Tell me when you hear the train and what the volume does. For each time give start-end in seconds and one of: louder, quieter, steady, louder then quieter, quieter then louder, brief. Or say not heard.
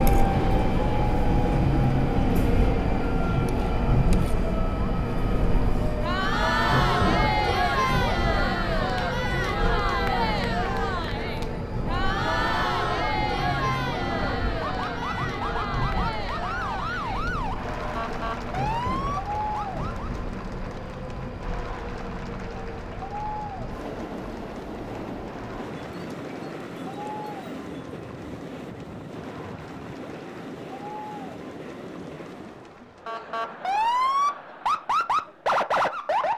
0.0-32.9 quieter.